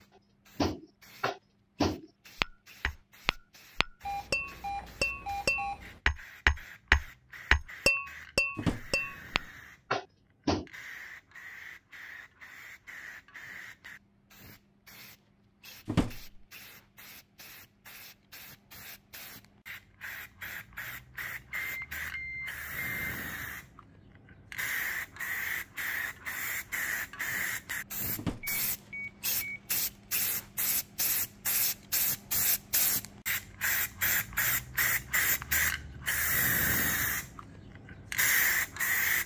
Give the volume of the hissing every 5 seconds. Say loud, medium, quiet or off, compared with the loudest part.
quiet, quiet, quiet, quiet, medium, medium, loud, loud.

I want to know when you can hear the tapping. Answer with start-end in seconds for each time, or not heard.
0.6-10.7.